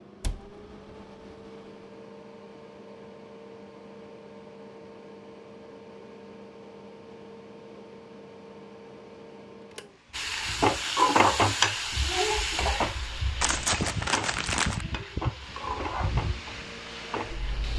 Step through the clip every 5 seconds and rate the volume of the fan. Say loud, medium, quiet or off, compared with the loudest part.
medium, medium, loud, loud.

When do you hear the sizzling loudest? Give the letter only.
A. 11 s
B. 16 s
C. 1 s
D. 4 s
A.